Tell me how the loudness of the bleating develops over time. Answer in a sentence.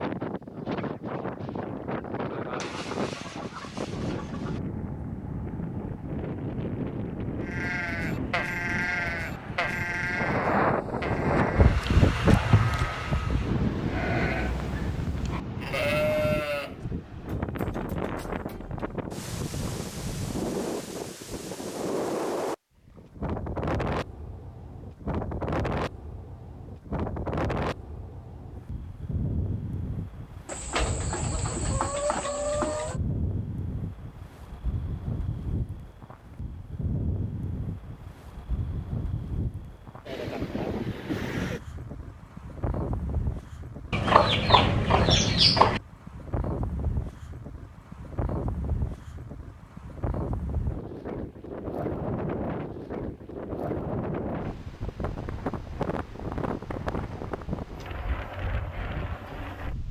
The loudness of the bleating goes down, then up.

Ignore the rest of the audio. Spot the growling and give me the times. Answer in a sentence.
You can't hear the growling here.